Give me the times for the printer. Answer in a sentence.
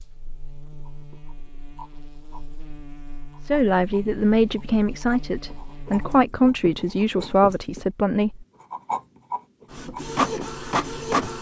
You can hear the printer from 9.7 to 11.3 s.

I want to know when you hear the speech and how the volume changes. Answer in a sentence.
The speech can be heard from 3.5 to 8.4 s, at a steady volume.